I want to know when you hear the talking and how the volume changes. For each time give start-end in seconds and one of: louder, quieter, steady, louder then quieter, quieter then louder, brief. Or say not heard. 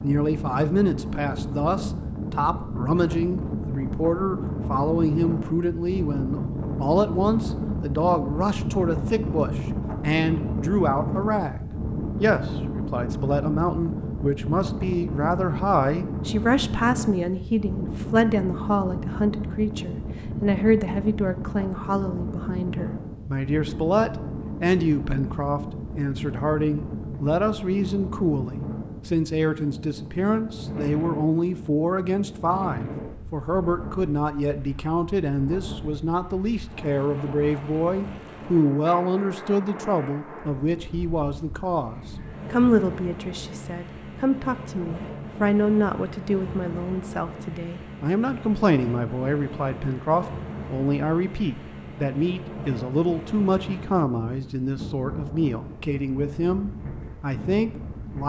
0.0-58.2 steady.